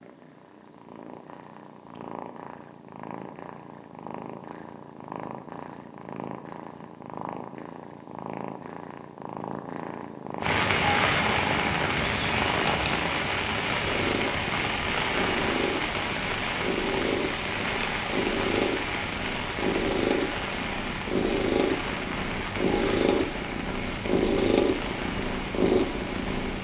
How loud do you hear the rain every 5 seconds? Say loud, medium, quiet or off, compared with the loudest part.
off, off, loud, loud, medium, medium.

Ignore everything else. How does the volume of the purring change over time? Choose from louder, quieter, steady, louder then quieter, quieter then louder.
louder.